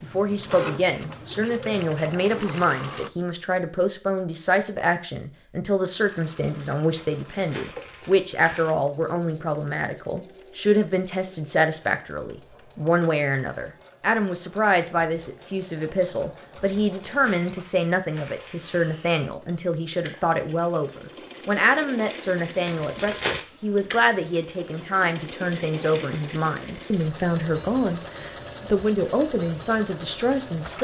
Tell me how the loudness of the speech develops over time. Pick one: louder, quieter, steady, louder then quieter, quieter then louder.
steady.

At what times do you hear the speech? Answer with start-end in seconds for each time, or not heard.
0.0-30.7.